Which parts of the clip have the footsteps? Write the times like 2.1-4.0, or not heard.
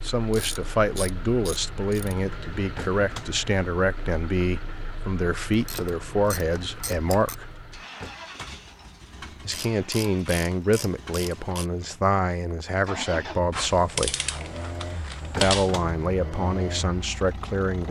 not heard.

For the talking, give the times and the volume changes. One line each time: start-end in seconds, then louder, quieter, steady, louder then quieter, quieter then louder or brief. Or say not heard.
0.0-7.5 steady
9.4-14.2 steady
15.4-17.8 brief.